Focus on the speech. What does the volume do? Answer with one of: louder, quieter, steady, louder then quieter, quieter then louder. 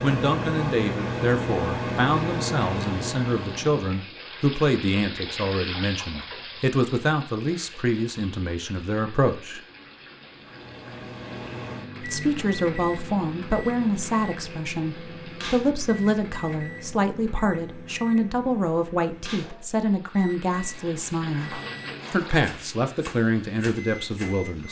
steady.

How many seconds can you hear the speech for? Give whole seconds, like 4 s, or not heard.
22 s.